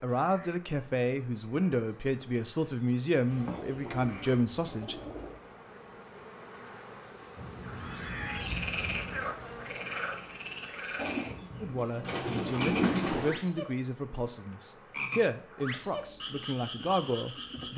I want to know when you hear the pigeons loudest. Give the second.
13 s.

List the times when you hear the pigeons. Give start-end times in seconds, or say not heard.
3.3-5.4, 10.9-13.4.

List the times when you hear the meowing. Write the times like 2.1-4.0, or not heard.
7.3-9.3.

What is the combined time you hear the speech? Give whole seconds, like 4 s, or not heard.
11 s.